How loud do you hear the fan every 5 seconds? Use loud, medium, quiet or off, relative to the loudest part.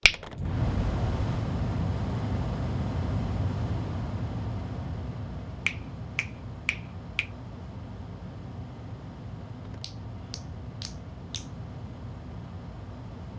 loud, medium, medium.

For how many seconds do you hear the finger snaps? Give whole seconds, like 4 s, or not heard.
5 s.